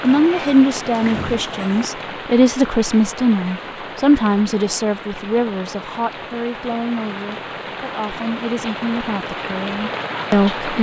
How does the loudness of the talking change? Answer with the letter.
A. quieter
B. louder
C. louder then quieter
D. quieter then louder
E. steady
A.